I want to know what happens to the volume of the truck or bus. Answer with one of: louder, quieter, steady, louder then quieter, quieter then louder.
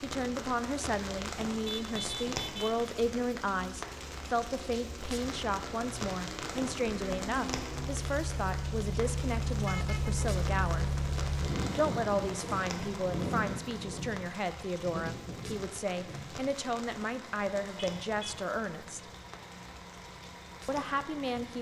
louder then quieter.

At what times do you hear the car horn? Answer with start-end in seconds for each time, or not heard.
1.6-2.9, 9.7-10.2, 17.8-18.4.